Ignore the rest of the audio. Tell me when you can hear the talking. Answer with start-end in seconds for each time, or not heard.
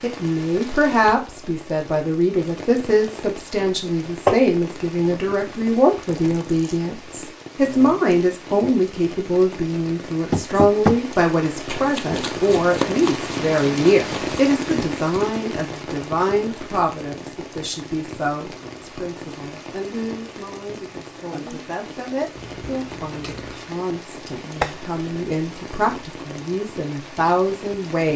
0.0-28.1.